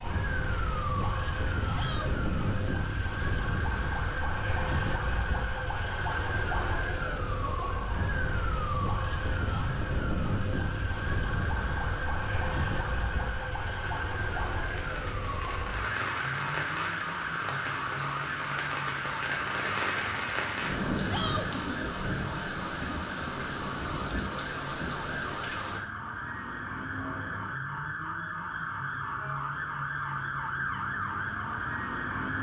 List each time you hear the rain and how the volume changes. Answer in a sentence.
You can hear the rain from 0.0 to 25.8 s, getting louder.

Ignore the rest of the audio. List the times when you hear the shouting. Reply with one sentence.
You can hear the shouting from 1.7 to 2.1 s and from 21.1 to 21.5 s.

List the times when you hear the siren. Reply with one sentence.
The siren can be heard from 0.0 to 32.3 s.